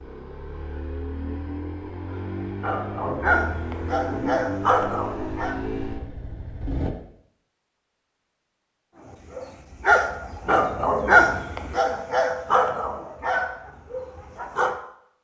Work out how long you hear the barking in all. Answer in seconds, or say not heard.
9 s.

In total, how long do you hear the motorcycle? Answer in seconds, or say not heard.
7 s.